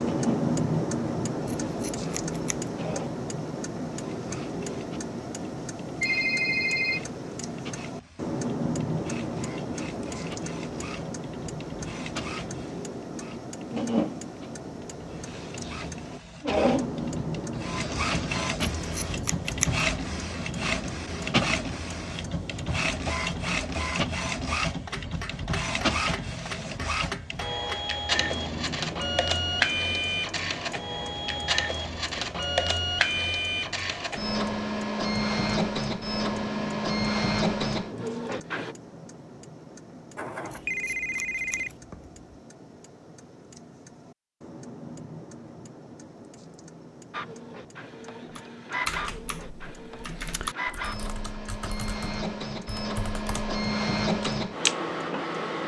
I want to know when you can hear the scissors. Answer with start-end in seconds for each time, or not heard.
1.4-2.7, 18.8-19.9, 40.5-42.1.